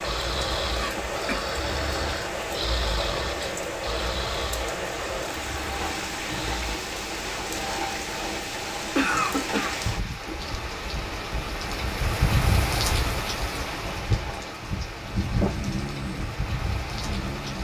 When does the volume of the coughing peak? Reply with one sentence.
The volume of the coughing peaks at 9 seconds.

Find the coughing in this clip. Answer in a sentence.
The coughing can be heard from 0.8 to 1.5 s and from 8.9 to 9.8 s.